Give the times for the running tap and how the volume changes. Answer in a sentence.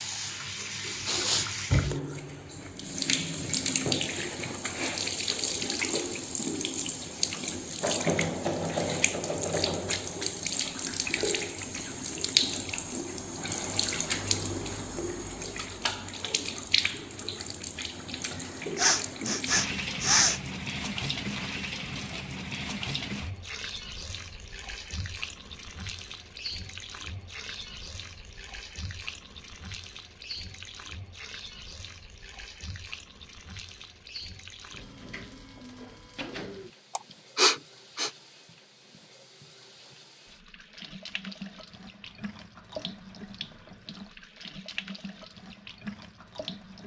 The running tap can be heard from 0.0 to 46.8 s, getting quieter.